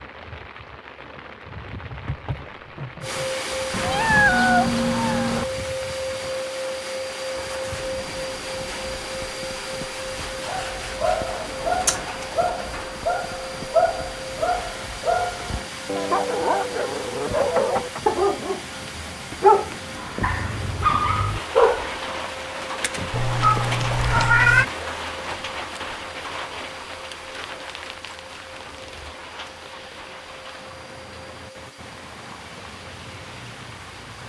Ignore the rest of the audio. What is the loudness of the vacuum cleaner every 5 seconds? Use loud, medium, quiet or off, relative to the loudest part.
loud, loud, medium, medium, medium, quiet, quiet.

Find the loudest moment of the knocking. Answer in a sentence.
The volume of the knocking peaks at 18 seconds.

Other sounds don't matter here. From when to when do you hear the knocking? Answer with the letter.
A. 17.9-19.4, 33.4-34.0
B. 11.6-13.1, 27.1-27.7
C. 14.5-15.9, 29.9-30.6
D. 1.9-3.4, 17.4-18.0
D.